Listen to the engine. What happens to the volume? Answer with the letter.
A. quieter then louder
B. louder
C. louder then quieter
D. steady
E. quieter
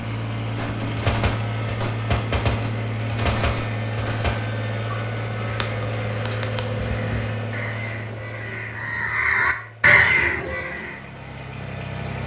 E.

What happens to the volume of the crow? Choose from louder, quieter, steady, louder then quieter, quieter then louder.
louder.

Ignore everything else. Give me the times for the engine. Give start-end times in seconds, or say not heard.
0.0-12.2.